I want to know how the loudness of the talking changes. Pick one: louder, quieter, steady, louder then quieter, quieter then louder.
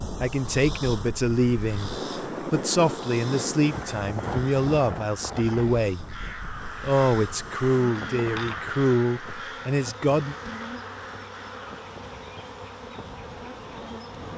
steady.